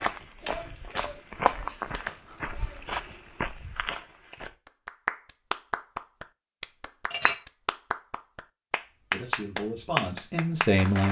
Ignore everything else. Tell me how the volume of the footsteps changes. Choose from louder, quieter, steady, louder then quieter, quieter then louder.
louder then quieter.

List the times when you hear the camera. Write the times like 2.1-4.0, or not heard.
not heard.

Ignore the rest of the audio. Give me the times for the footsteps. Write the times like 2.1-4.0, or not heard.
0.0-4.5.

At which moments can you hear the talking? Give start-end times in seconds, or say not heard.
9.1-11.0.